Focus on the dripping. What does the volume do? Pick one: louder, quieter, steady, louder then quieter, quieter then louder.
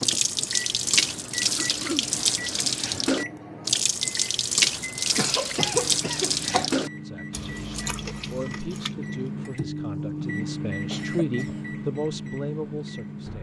quieter.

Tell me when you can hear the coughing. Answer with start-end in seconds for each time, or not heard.
1.6-2.1, 4.8-6.7, 10.8-11.7.